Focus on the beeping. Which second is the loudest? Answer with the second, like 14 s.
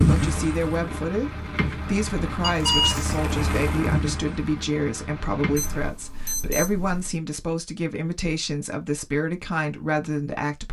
3 s.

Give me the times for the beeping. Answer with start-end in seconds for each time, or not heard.
2.4-3.1, 5.5-7.2.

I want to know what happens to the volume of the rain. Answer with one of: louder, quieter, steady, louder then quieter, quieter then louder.
louder then quieter.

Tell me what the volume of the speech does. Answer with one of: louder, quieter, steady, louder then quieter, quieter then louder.
steady.